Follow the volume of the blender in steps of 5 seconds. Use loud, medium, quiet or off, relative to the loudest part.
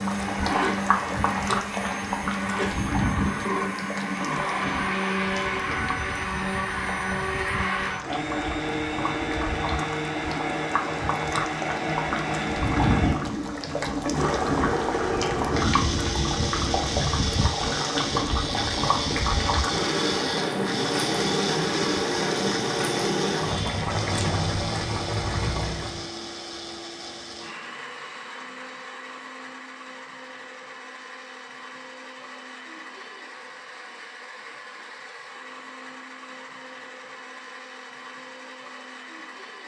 loud, loud, loud, loud, loud, medium, quiet, quiet.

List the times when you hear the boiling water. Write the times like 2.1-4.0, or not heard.
0.0-26.1.